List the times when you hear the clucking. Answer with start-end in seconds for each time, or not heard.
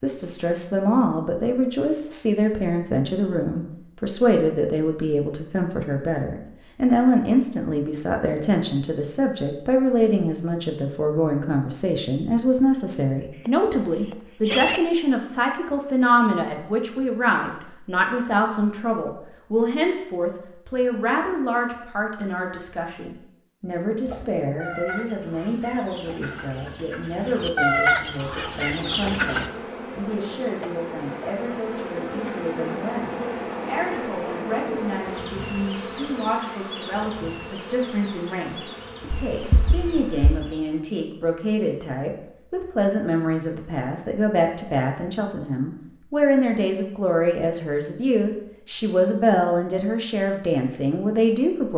24.1-29.5.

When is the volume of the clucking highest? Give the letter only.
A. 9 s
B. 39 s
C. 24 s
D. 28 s
D.